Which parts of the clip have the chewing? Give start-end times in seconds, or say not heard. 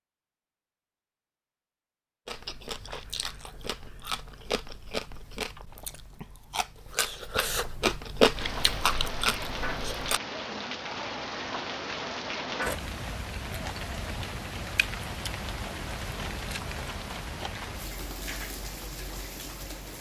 2.2-10.2.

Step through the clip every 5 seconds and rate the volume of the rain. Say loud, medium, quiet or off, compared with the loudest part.
off, loud, loud, loud.